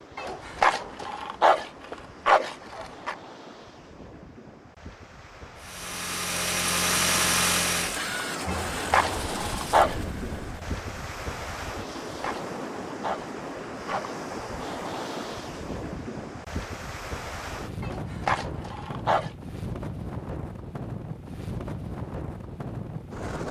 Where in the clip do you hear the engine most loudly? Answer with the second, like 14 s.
7 s.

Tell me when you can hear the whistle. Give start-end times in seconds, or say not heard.
not heard.